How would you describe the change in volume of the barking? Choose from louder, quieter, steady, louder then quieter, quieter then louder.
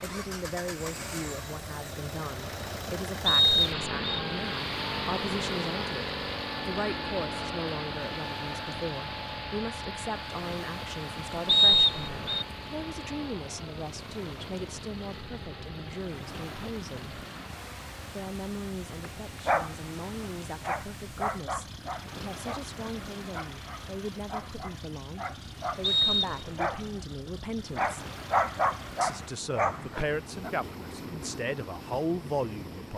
quieter then louder.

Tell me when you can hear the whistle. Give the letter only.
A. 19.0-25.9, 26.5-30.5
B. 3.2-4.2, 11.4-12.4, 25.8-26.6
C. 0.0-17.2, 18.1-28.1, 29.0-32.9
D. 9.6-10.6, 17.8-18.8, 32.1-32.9
B.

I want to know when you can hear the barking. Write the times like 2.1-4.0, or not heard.
19.0-25.9, 26.5-30.5.